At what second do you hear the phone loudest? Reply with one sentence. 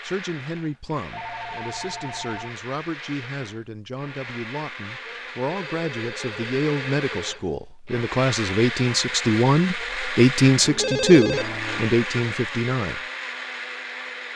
The volume of the phone peaks at 11 seconds.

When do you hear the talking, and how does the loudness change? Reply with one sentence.
You can hear the talking from 0.0 to 13.0 s, getting louder.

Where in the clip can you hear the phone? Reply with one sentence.
You can hear the phone from 1.1 to 2.5 s, from 5.5 to 7.6 s and from 10.7 to 11.9 s.